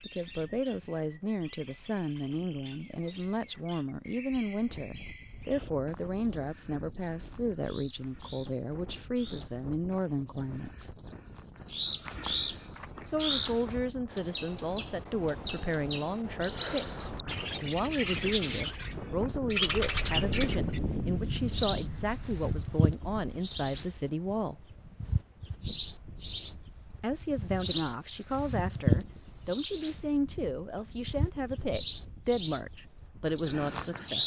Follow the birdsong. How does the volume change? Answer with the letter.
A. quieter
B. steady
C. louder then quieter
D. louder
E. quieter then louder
D.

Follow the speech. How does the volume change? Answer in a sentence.
The loudness of the speech stays about the same.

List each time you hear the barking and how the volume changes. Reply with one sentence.
You can't hear the barking here.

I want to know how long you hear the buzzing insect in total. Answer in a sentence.
You can't hear the buzzing insect here.